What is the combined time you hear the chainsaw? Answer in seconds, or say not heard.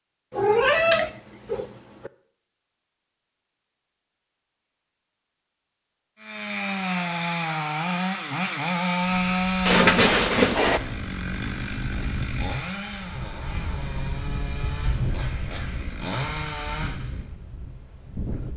11 s.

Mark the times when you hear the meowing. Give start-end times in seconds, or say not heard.
0.3-2.1, 9.7-10.8.